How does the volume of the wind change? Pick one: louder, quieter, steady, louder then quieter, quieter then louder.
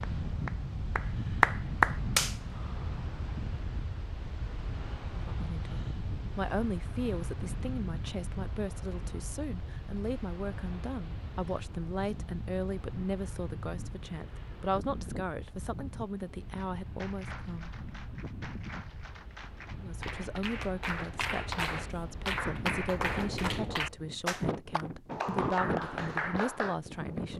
quieter then louder.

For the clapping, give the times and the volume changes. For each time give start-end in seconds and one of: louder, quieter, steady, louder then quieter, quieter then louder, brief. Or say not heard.
0.0-2.4 brief
16.6-26.8 louder.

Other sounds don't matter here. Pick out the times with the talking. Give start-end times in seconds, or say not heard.
5.1-17.7, 19.8-27.3.